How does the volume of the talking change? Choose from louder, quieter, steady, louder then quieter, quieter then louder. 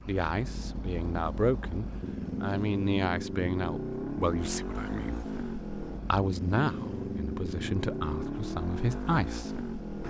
steady.